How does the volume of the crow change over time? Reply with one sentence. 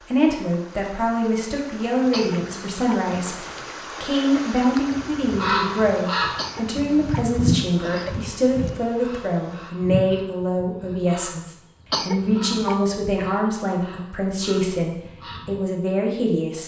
The volume of the crow goes down.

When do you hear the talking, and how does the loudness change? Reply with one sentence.
The talking can be heard from 0.1 to 16.6 s, at a steady volume.